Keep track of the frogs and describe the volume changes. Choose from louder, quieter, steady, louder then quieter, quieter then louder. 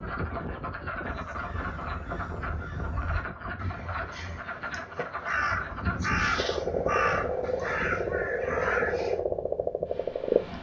louder.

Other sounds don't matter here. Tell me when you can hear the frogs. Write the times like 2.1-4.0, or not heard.
0.0-10.4.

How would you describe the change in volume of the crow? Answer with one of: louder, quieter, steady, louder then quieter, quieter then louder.
louder.